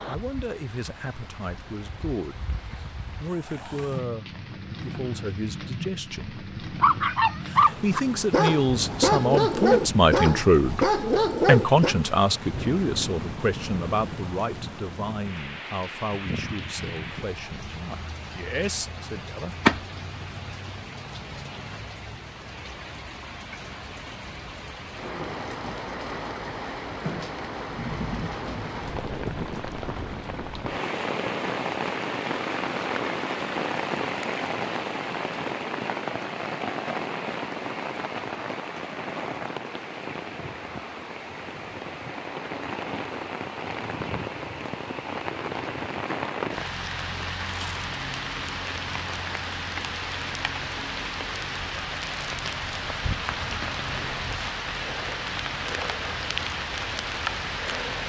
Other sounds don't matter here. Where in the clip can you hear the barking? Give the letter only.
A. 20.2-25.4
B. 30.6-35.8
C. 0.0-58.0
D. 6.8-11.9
D.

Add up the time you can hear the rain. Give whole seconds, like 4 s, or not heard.
58 s.